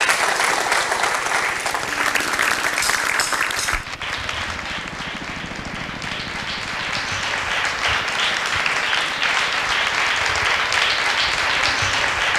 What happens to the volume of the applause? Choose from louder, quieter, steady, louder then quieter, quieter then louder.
quieter then louder.